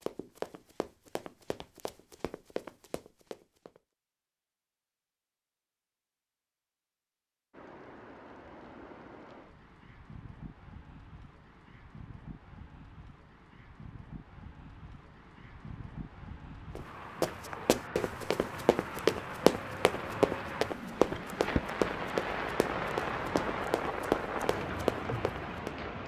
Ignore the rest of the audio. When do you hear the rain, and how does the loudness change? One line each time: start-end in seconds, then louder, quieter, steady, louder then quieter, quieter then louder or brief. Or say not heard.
7.5-26.0 louder.